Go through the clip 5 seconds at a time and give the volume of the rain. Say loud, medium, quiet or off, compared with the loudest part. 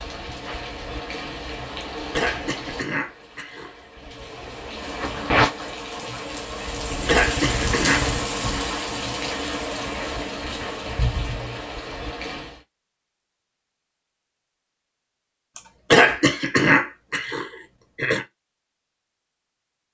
medium, loud, medium, off.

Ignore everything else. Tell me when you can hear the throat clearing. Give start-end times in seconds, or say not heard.
1.8-3.9, 7.0-8.1, 15.6-18.2.